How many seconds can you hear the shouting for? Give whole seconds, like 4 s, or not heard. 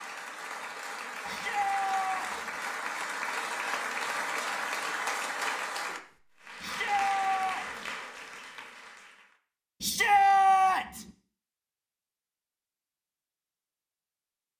4 s.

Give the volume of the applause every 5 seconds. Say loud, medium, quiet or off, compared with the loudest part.
loud, loud, off.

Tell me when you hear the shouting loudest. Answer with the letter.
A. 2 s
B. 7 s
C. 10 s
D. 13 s
C.